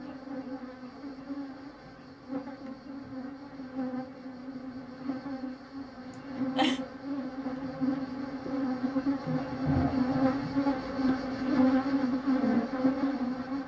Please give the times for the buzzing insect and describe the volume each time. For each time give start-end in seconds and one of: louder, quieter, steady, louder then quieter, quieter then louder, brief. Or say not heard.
0.0-13.6 louder.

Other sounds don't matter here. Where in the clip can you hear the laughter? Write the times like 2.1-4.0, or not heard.
6.1-6.8.